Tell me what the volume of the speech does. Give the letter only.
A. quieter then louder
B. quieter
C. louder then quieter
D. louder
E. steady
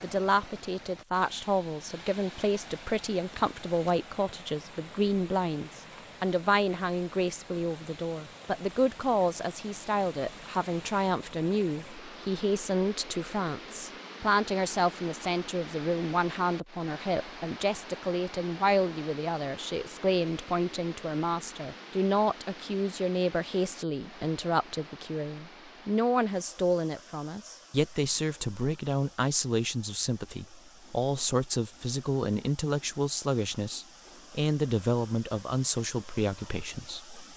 E.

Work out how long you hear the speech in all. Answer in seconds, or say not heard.
37 s.